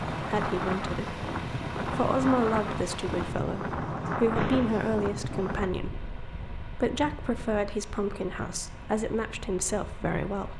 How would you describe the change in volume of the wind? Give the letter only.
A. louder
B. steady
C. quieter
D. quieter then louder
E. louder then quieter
C.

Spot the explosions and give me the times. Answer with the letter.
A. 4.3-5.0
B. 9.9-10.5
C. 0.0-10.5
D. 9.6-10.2
A.